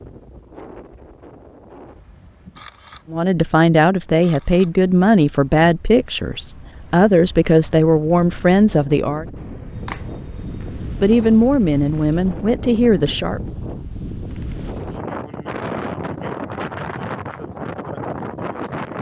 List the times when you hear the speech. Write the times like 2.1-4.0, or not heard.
3.1-9.2, 11.0-13.4.